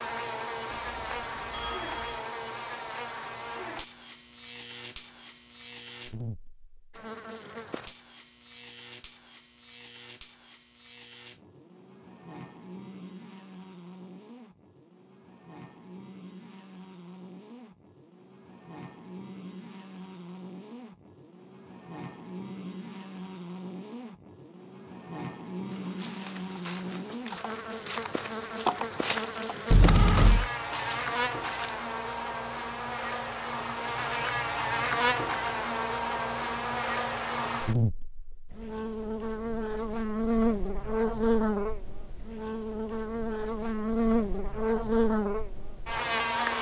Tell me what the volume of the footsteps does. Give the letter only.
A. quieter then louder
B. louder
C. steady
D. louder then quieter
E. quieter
D.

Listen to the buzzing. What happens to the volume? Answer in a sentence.
The volume of the buzzing goes down, then up.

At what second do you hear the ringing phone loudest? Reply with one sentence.
The volume of the ringing phone peaks at 30 seconds.